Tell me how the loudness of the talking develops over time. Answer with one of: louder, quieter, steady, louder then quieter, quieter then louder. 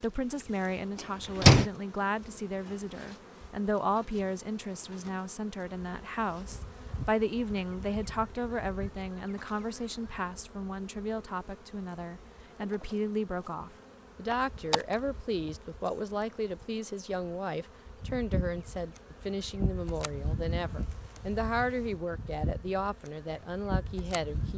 steady.